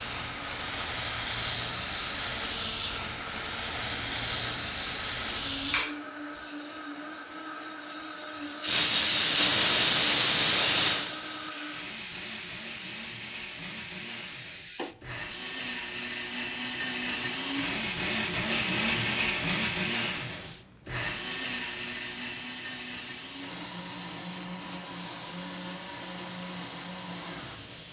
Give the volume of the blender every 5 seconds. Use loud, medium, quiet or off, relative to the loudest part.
medium, medium, medium, loud, medium, medium.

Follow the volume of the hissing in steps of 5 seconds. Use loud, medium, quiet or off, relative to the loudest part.
loud, loud, loud, quiet, quiet, quiet.